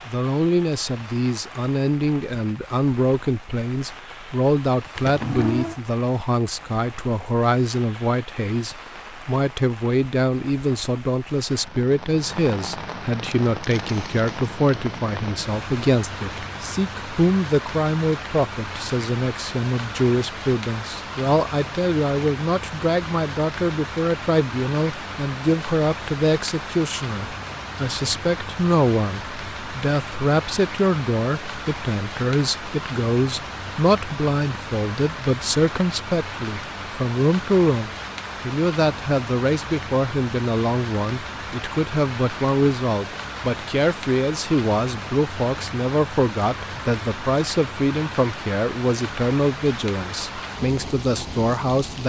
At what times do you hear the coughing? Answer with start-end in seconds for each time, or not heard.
not heard.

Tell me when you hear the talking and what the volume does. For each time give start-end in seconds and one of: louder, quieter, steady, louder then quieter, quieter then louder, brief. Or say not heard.
0.1-52.0 steady.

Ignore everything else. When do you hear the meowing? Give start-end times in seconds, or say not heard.
5.0-5.8.